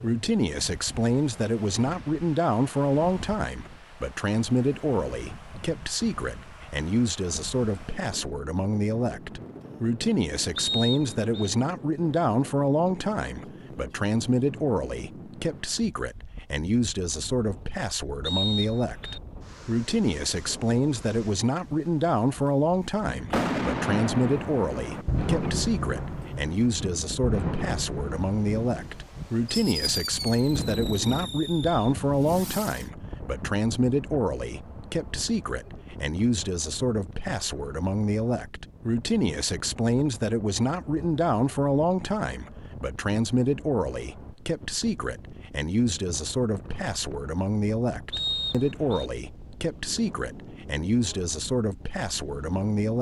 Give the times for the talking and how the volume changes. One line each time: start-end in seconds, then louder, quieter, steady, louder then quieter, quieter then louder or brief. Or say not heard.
0.0-52.9 steady.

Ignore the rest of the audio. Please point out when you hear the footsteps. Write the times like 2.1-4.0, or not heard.
not heard.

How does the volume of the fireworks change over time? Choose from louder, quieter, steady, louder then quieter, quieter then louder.
quieter.